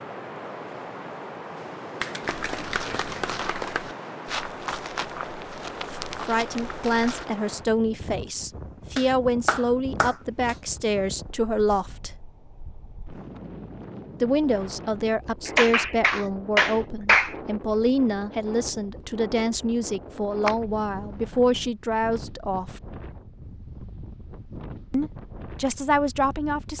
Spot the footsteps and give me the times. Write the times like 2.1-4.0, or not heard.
2.2-7.2.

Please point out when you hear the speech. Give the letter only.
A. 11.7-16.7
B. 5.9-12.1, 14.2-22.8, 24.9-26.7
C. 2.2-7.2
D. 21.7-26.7
B.